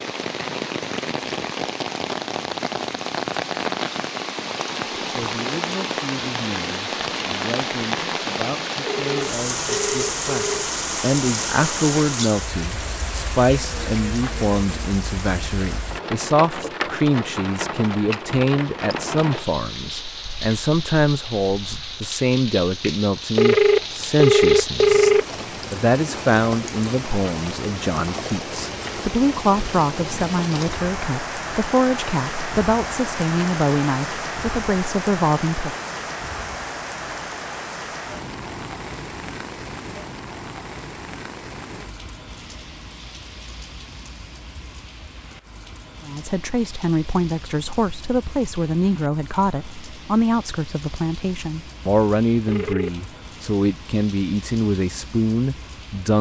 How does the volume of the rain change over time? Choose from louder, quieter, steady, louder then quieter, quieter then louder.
quieter.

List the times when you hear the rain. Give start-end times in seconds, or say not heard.
0.0-56.1.